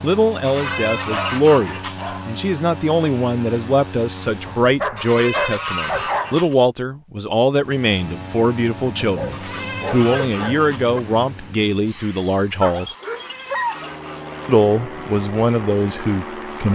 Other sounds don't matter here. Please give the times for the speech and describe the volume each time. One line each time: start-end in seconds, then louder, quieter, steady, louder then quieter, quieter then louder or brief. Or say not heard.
0.0-12.9 steady
14.4-16.7 brief.